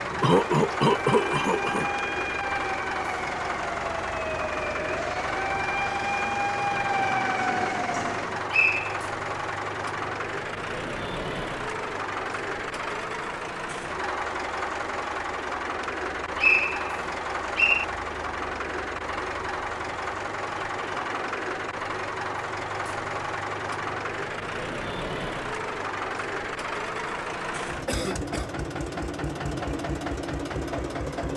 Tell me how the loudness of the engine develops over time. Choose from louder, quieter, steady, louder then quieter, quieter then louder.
steady.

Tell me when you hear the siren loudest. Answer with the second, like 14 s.
7 s.